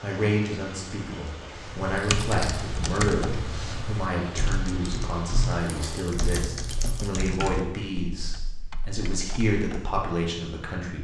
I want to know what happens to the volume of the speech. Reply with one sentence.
The volume of the speech stays about the same.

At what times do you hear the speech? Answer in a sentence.
The speech can be heard from 0.0 to 10.9 s.